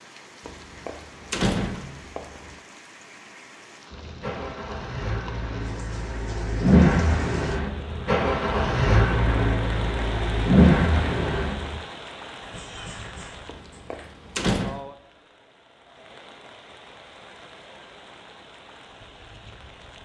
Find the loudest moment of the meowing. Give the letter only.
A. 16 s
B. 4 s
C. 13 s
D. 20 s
C.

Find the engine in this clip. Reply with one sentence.
You can hear the engine from 3.9 to 11.8 s.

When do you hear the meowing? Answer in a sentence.
You can hear the meowing from 12.4 to 14.2 s.